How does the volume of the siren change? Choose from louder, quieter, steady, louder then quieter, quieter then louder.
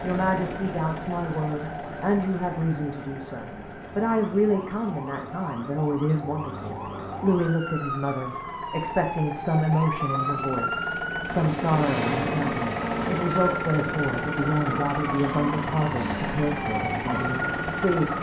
louder.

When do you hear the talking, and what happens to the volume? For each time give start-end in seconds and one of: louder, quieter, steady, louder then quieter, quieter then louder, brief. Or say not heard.
0.0-18.1 steady.